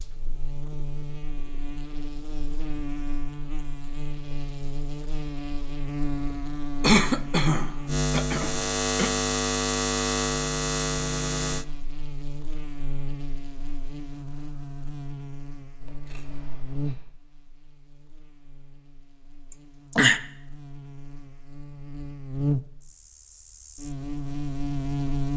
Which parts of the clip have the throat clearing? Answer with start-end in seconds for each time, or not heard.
6.8-9.1, 19.5-20.2.